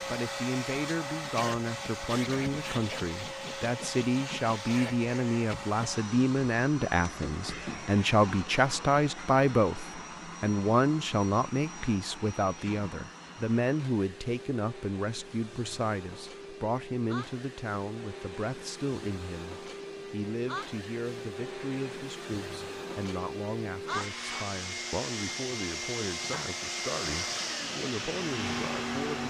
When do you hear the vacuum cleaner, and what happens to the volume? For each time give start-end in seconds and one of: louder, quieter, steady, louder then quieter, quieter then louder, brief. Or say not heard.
0.0-29.2 quieter then louder.